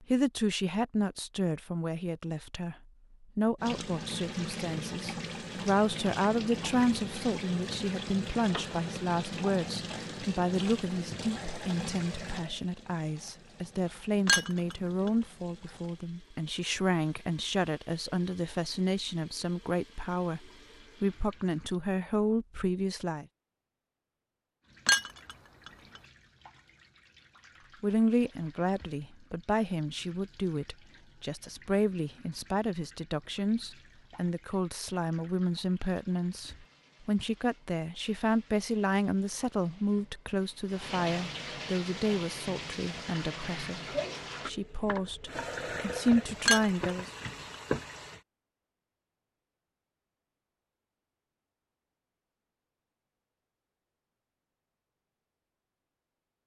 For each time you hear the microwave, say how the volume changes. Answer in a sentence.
The microwave can't be heard in this clip.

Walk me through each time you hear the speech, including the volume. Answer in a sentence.
You can hear the speech briefly from 0.0 to 2.8 s; from 3.4 to 23.2 s, at a steady volume; and from 27.8 to 47.1 s, at a steady volume.